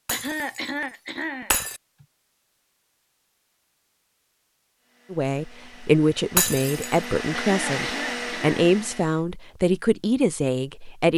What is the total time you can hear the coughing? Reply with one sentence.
You can hear the coughing for 3 seconds altogether.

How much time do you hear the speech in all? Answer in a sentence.
You can hear the speech for 6 seconds altogether.